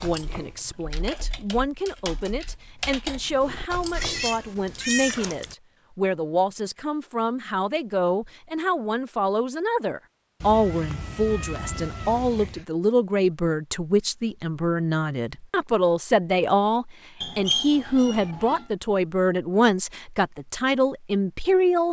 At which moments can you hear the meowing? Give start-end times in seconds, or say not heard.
3.9-5.5, 10.4-12.7, 17.2-18.6.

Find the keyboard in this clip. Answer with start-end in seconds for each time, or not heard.
0.0-4.2.